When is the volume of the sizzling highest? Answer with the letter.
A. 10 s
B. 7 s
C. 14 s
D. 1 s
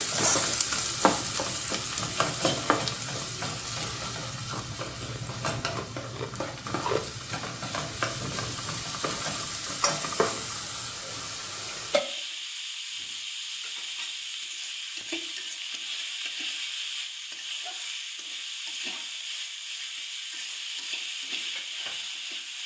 D.